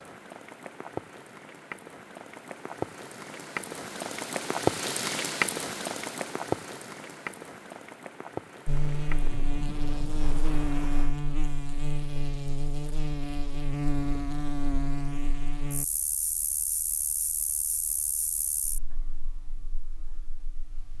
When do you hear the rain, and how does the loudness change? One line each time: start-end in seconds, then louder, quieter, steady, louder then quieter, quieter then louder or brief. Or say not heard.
0.0-11.2 louder then quieter.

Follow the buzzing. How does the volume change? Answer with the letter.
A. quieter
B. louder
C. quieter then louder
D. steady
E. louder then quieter
A.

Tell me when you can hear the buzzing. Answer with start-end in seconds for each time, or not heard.
8.7-20.9.